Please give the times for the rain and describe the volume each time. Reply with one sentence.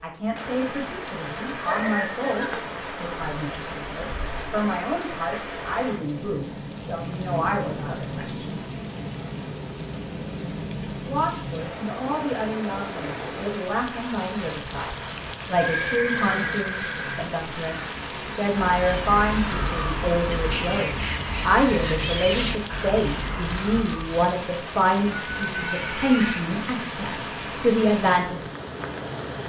The rain can be heard from 0.0 to 29.4 s, at a steady volume.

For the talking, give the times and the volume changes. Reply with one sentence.
The talking can be heard from 0.0 to 8.6 s, at a steady volume; and from 11.1 to 28.4 s, getting louder.